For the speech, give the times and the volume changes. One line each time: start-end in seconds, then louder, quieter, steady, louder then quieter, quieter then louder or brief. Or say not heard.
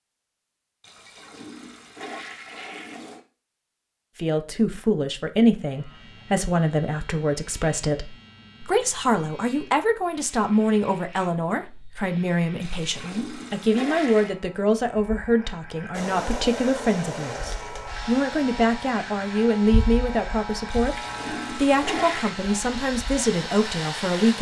4.2-24.3 steady.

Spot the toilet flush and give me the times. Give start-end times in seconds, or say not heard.
0.8-3.2, 12.6-14.3, 20.7-22.4.